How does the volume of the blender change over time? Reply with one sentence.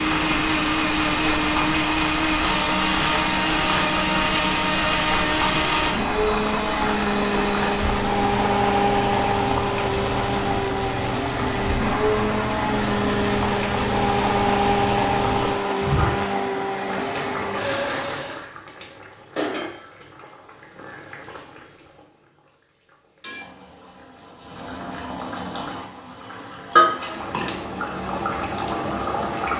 The volume of the blender stays about the same.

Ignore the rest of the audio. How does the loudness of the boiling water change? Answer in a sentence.
The volume of the boiling water goes down, then up.